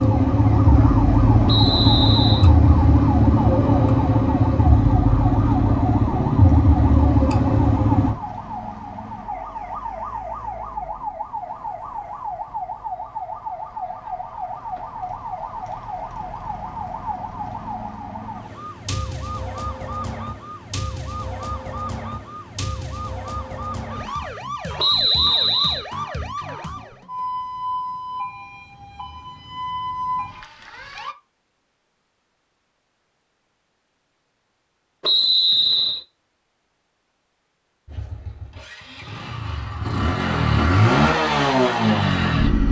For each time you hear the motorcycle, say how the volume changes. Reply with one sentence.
The motorcycle can be heard from 0.0 to 8.2 s, at a steady volume; and from 37.9 to 42.6 s, getting louder.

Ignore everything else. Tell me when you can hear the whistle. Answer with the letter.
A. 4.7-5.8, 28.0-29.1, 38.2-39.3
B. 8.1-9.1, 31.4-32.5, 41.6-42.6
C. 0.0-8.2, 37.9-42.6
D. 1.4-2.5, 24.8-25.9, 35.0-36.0
D.